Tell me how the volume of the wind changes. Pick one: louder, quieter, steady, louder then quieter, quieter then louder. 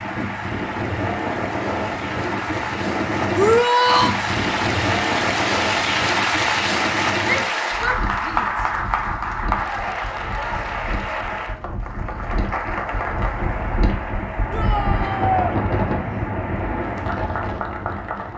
quieter then louder.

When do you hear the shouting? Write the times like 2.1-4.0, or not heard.
3.4-4.2, 7.2-8.7, 14.5-15.6.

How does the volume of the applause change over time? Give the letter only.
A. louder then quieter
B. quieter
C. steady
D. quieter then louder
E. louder
A.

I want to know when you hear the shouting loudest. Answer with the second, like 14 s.
4 s.